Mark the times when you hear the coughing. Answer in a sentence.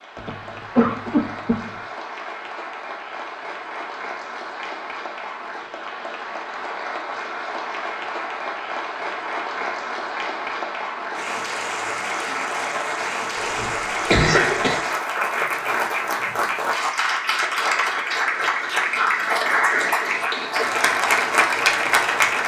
You can hear the coughing from 0.2 to 1.6 s and from 13.3 to 14.8 s.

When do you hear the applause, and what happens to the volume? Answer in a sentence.
The applause can be heard from 0.0 to 22.4 s, getting louder.